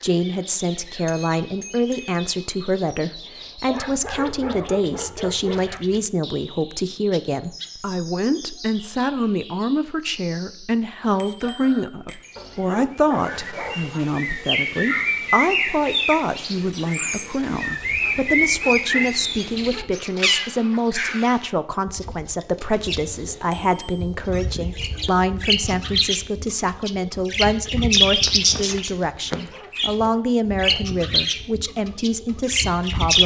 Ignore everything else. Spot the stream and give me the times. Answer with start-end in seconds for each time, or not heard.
not heard.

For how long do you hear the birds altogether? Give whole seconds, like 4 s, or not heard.
33 s.